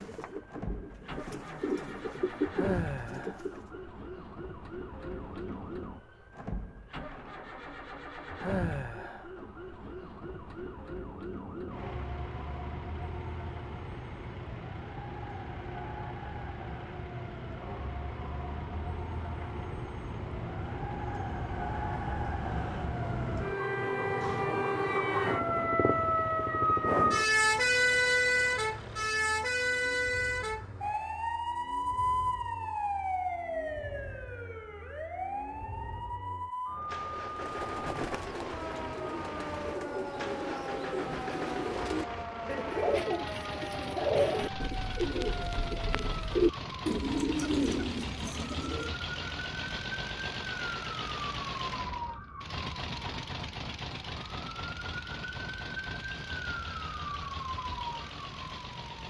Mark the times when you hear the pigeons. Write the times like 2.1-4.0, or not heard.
0.0-3.8, 37.1-49.0.